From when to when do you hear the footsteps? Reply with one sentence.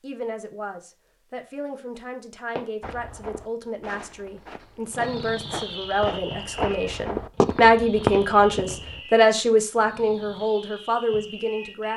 The footsteps can be heard from 2.8 to 9.0 s.